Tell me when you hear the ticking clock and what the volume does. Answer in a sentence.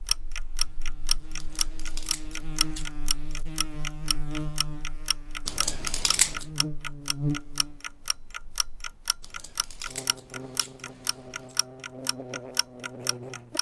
You can hear the ticking clock from 0.1 to 13.5 s, getting quieter.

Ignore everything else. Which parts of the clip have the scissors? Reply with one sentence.
The scissors can be heard from 1.4 to 2.9 s, from 5.5 to 6.5 s and from 9.2 to 11.6 s.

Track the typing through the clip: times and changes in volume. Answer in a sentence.
The typing can't be heard in this clip.